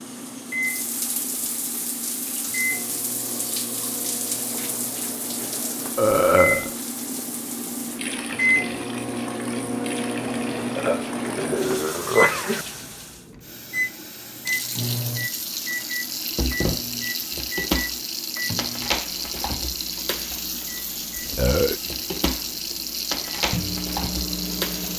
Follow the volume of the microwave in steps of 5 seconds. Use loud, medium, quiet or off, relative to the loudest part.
medium, loud, loud, medium, medium.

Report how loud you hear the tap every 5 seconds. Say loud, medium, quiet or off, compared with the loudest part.
medium, medium, medium, loud, loud.